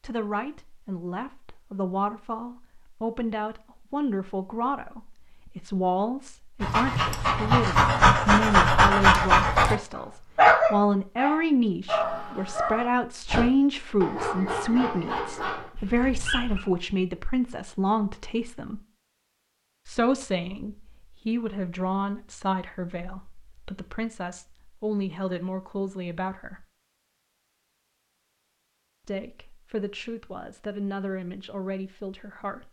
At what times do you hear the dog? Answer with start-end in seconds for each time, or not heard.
6.6-9.8, 10.3-16.6.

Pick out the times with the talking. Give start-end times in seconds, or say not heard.
0.0-18.8, 19.9-26.6, 29.1-32.6.